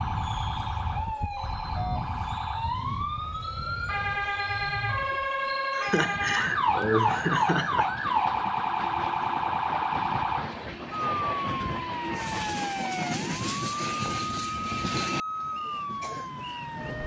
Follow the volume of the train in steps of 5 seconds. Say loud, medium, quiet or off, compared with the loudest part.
medium, medium, loud, medium.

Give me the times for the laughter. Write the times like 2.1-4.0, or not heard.
5.8-7.9.